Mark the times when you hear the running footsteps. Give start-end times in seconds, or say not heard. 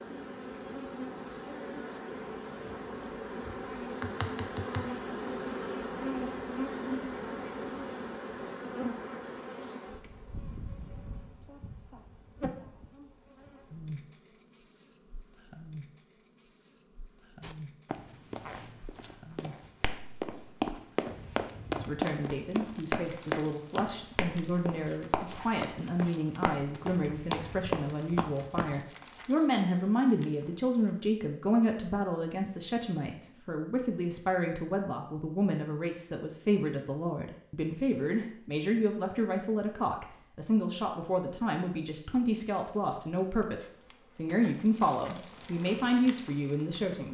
17.4-28.8.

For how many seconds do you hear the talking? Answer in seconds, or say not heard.
25 s.